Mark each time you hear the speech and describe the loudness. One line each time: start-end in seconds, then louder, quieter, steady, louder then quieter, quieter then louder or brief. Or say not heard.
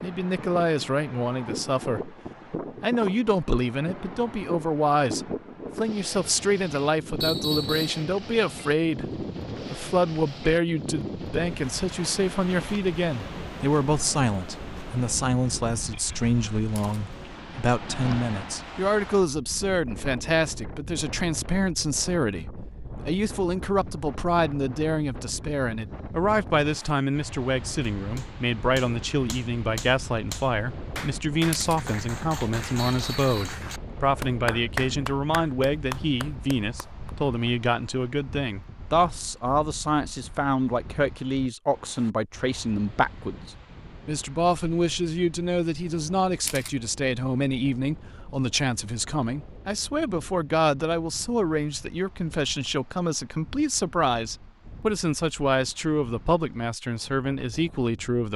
0.0-58.3 steady.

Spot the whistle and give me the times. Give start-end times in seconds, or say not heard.
7.2-8.0, 32.8-33.6.